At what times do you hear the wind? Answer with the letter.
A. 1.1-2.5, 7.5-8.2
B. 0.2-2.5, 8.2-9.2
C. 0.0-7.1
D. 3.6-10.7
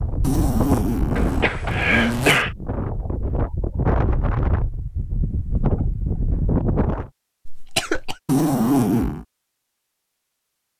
C.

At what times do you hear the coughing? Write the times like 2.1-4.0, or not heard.
1.1-2.5, 7.5-8.2.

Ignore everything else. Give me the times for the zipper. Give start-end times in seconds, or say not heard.
0.2-2.5, 8.2-9.2.